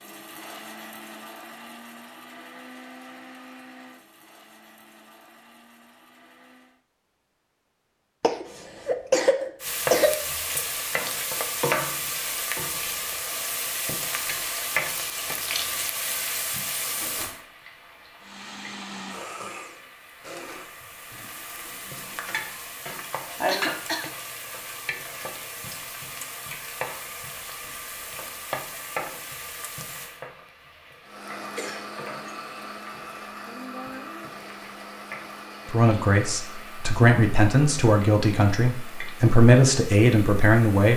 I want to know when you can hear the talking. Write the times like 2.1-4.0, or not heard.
35.6-40.9.